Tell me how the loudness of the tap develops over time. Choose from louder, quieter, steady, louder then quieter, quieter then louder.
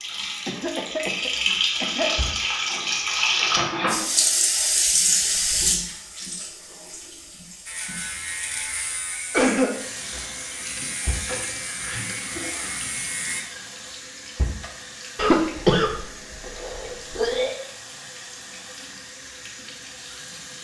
quieter.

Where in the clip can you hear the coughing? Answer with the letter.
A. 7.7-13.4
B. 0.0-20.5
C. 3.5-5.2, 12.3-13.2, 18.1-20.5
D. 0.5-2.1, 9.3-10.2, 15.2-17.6
D.